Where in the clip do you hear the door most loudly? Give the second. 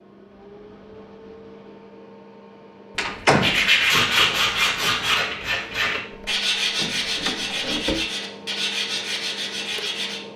3 s.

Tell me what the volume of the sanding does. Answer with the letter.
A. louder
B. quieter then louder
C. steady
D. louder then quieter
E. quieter
E.